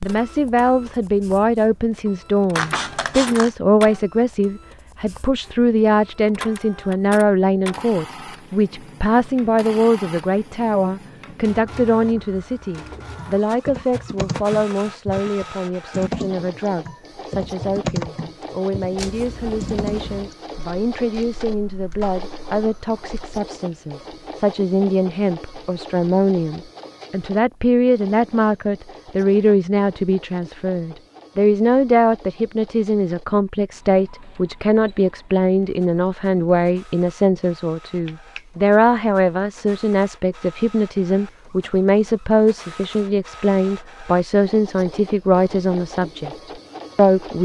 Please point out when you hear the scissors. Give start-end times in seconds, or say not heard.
2.5-3.5, 18.9-20.3, 37.9-38.5.